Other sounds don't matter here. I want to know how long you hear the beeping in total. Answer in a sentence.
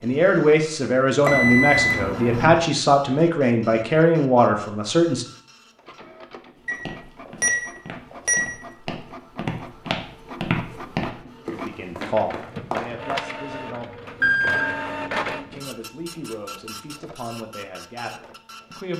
You can hear the beeping for 4 seconds altogether.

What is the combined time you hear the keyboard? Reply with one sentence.
You can't hear the keyboard here.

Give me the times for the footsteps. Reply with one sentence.
You can hear the footsteps from 6.7 to 13.2 s.